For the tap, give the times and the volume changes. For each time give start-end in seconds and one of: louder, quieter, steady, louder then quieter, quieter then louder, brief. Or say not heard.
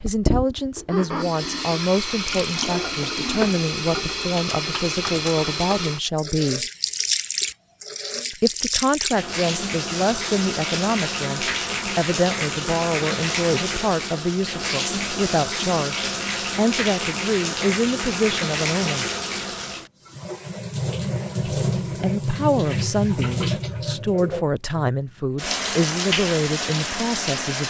0.0-27.6 steady.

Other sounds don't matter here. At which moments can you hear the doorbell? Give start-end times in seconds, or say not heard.
not heard.